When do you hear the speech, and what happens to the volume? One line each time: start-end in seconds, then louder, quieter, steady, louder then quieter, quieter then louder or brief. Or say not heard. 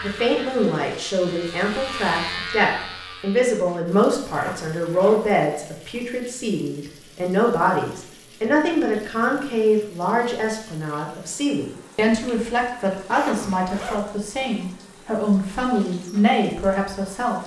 0.0-17.4 steady.